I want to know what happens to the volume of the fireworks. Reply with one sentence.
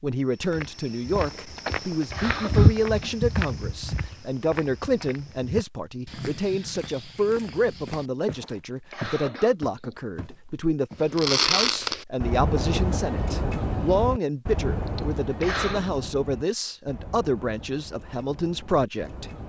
The volume of the fireworks goes down.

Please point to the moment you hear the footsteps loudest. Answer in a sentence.
The volume of the footsteps peaks at 3 seconds.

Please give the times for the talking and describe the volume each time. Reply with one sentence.
The talking can be heard from 0.0 to 19.2 s, at a steady volume.